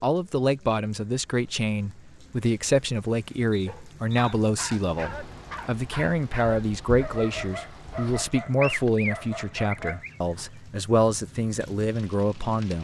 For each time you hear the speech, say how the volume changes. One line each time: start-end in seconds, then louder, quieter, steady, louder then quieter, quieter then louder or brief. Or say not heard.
0.0-12.7 steady.